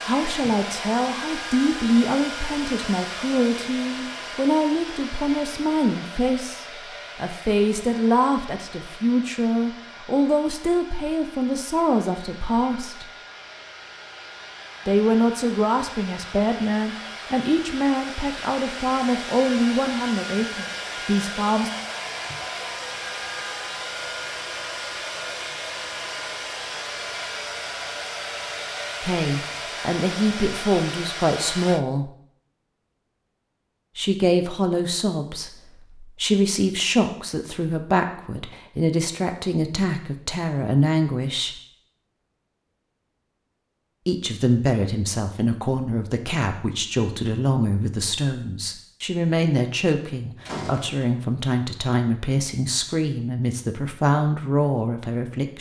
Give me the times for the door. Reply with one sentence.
You can hear the door from 50.5 to 51.0 s.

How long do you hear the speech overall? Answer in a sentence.
You can hear the speech for 42 seconds altogether.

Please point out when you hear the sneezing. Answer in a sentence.
The sneezing can't be heard in this clip.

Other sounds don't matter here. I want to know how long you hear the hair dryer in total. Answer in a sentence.
The hair dryer can be heard for 32 seconds in total.